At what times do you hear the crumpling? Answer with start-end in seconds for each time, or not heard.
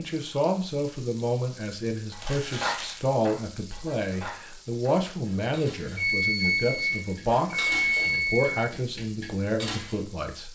2.1-3.0.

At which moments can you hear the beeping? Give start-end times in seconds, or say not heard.
6.0-8.7.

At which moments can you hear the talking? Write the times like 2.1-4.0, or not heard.
0.0-10.4.